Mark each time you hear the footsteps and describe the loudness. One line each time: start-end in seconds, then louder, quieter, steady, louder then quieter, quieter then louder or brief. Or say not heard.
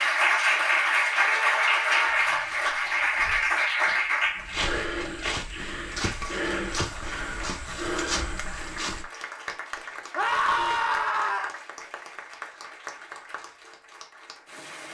2.0-9.1 louder.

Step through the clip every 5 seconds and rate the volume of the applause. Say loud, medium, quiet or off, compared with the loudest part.
loud, quiet, quiet.